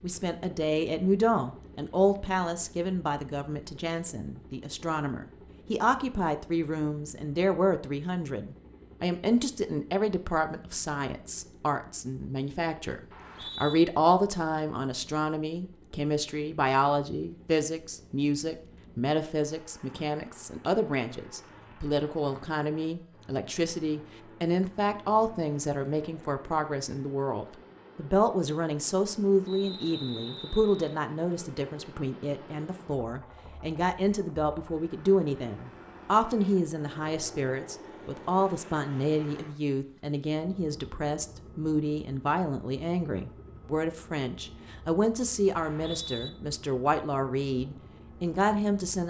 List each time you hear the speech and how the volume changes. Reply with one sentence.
The speech can be heard from 0.0 to 49.0 s, at a steady volume.